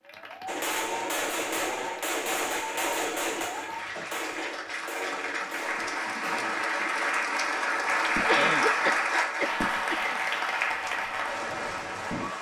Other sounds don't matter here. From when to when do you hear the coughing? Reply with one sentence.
The coughing can be heard from 3.8 to 4.4 s and from 8.2 to 10.2 s.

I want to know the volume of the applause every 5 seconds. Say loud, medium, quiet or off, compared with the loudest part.
medium, loud, loud.